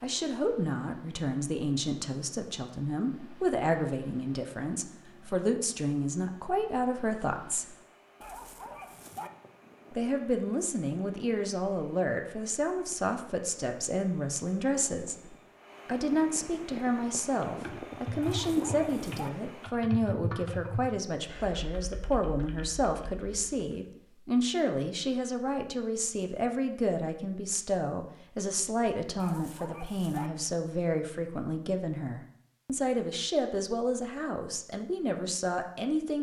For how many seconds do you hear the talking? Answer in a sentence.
You can hear the talking for 33 seconds altogether.